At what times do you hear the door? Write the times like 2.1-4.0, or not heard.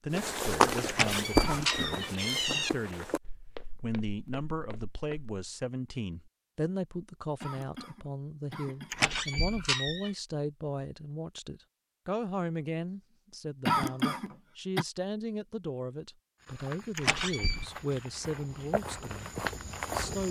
0.8-2.7, 8.9-10.1, 16.9-17.6.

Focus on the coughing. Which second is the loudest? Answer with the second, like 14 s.
14 s.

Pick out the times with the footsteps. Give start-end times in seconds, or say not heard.
0.1-5.3, 16.4-20.2.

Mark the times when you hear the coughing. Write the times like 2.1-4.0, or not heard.
1.4-2.6, 7.4-9.1, 13.7-14.8.